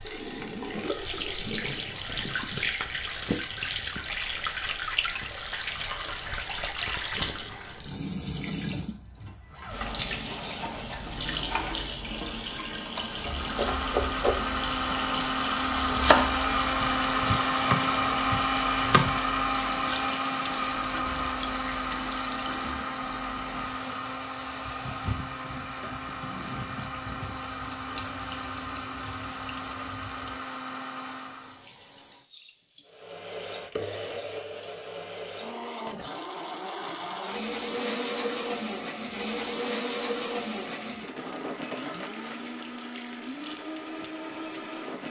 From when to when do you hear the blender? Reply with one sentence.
You can hear the blender from 13.2 to 31.6 s and from 32.9 to 45.0 s.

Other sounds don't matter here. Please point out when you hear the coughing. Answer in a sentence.
The coughing can't be heard in this clip.